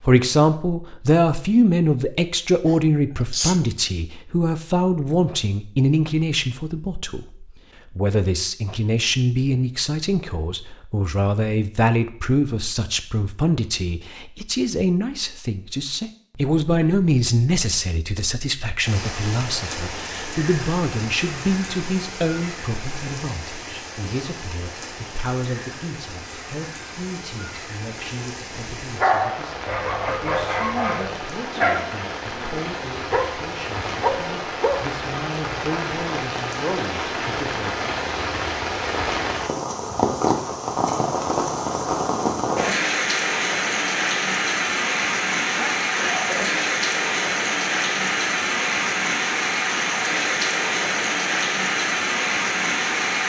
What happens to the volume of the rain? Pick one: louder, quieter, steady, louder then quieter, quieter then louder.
louder.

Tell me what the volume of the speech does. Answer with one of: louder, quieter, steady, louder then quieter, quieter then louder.
quieter.